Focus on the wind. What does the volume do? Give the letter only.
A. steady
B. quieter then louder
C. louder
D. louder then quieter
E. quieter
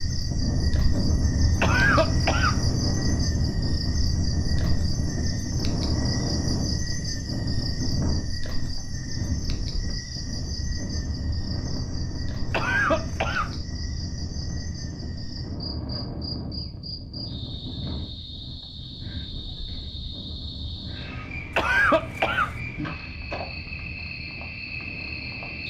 E.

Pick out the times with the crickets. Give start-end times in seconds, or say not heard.
0.0-25.6.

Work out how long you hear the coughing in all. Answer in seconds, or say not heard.
3 s.